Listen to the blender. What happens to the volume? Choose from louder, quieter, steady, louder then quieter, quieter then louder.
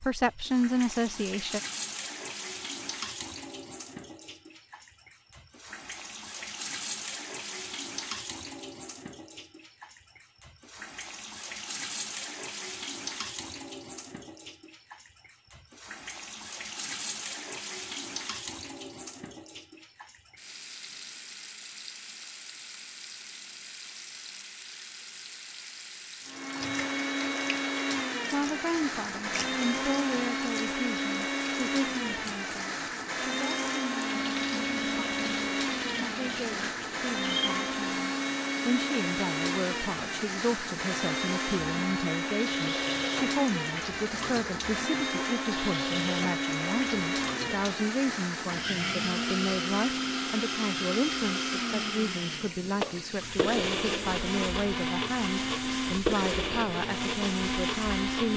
steady.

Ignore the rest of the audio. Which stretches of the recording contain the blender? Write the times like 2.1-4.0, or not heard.
26.2-58.3.